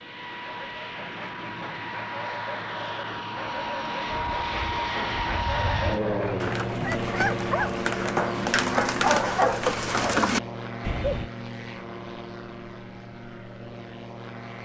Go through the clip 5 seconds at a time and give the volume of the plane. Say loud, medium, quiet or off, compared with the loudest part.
loud, loud, medium.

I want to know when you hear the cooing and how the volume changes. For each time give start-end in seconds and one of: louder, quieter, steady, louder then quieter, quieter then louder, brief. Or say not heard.
4.0-11.3 louder.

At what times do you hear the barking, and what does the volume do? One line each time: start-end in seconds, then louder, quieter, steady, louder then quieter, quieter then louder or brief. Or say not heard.
0.5-10.3 louder.